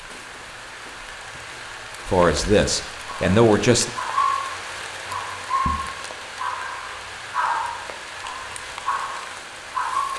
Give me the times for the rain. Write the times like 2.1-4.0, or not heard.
0.0-10.1.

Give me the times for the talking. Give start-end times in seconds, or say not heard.
2.0-3.9.